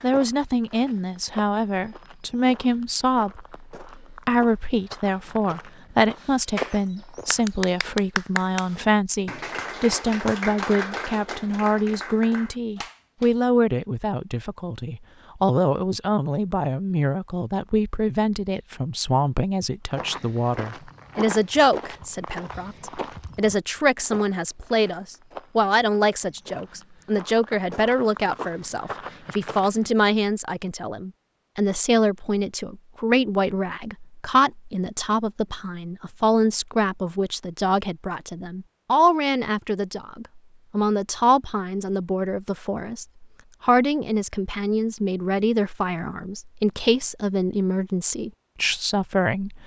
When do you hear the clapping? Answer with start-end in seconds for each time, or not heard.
6.2-13.3.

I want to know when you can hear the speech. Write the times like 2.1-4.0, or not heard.
0.0-49.6.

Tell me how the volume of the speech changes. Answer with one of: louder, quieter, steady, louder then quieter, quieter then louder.
steady.